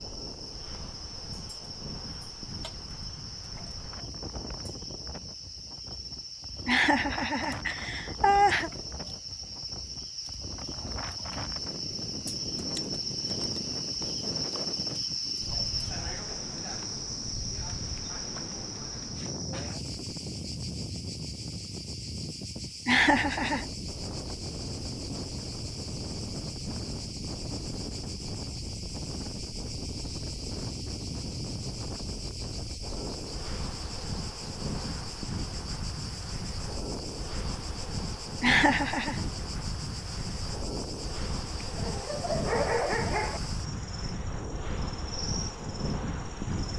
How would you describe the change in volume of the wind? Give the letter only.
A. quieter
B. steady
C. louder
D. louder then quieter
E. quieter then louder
C.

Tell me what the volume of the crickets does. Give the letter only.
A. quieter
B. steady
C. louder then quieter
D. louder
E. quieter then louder
C.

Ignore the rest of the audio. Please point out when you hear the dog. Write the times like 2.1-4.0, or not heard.
41.6-43.4.